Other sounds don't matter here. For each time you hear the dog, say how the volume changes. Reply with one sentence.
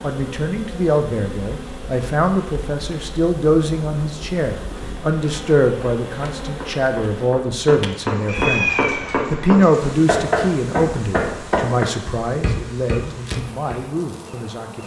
The dog can't be heard in this clip.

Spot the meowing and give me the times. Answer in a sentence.
You can hear the meowing from 8.2 to 9.2 s.